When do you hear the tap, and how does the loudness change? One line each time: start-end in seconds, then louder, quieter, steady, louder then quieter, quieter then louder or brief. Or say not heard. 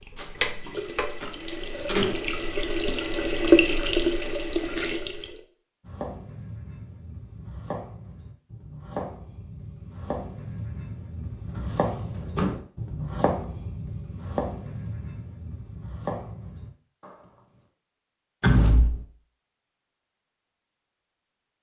0.0-5.4 louder then quieter.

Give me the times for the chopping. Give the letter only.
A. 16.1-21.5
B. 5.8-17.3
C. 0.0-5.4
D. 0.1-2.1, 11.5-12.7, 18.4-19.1
B.